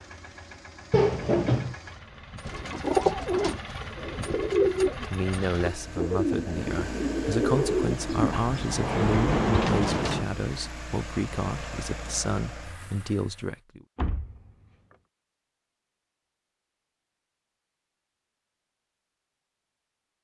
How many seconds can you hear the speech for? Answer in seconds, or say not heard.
9 s.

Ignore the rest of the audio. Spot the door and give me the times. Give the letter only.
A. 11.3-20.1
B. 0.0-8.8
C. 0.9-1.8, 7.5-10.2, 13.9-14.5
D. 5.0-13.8
C.